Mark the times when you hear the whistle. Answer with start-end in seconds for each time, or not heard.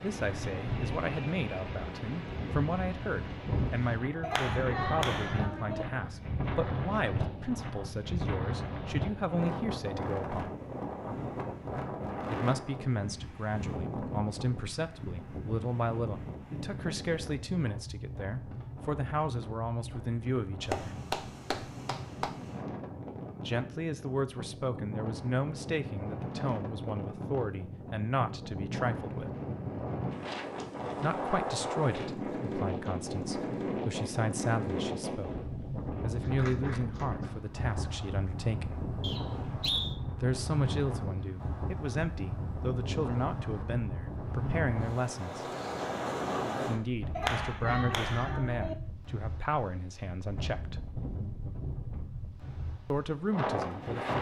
39.0-40.0.